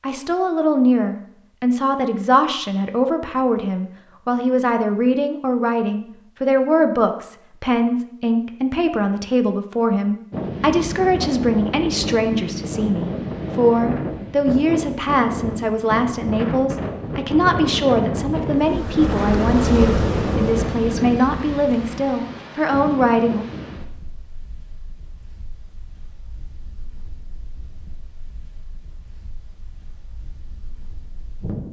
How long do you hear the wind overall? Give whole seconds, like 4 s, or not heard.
21 s.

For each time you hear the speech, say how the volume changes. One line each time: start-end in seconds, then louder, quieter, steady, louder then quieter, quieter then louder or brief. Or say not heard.
0.0-23.4 steady.